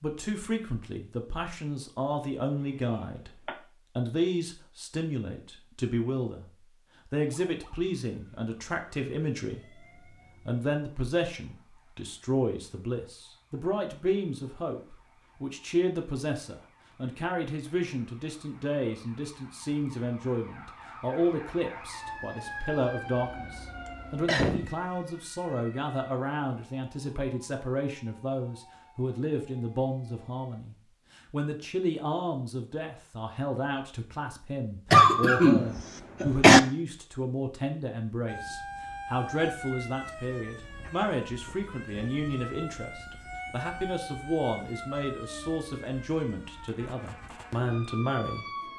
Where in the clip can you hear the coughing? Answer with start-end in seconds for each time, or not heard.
2.5-3.5, 23.9-24.7, 34.9-36.6.